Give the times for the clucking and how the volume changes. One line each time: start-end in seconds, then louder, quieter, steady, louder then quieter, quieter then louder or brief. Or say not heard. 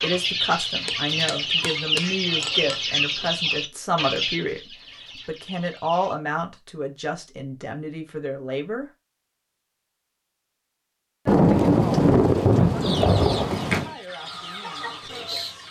0.0-6.2 quieter
12.8-15.6 brief.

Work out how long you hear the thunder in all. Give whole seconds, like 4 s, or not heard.
3 s.